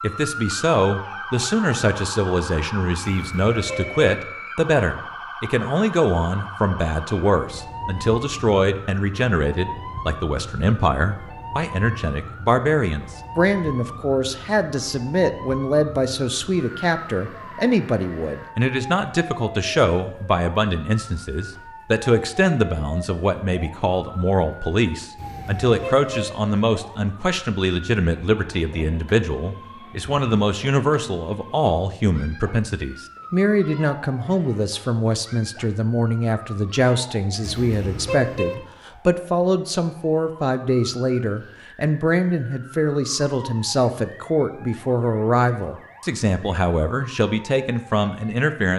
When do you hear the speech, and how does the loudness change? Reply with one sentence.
The speech can be heard from 0.0 to 48.7 s, at a steady volume.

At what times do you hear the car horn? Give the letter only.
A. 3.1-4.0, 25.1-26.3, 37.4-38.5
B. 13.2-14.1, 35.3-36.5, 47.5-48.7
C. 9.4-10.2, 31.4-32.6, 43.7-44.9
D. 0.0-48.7
A.